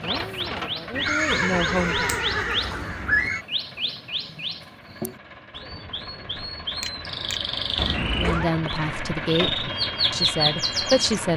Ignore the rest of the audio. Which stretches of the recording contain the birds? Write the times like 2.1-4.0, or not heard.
0.0-11.2.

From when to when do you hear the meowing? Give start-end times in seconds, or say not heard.
1.4-3.3, 7.8-8.5.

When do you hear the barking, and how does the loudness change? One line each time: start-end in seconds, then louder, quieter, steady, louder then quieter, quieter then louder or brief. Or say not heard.
not heard.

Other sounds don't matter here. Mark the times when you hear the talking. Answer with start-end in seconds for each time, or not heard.
0.0-2.1, 8.2-11.3.